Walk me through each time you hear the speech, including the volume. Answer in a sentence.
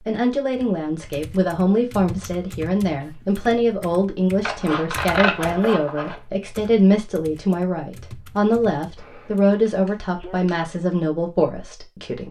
The speech can be heard from 0.1 to 12.2 s, at a steady volume.